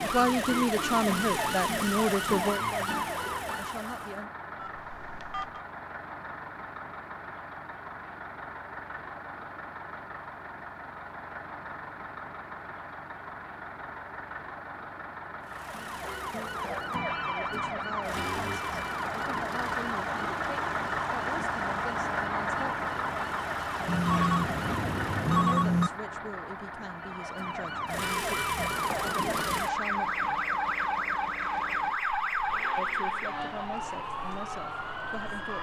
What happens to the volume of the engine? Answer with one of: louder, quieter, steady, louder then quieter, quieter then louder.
louder then quieter.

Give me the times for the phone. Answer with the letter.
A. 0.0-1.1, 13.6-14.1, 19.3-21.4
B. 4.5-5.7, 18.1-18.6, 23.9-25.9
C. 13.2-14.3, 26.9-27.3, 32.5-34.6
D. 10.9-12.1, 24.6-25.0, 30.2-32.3
B.